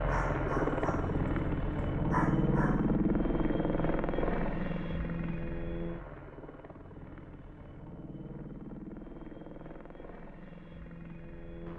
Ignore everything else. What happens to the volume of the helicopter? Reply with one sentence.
The volume of the helicopter goes down.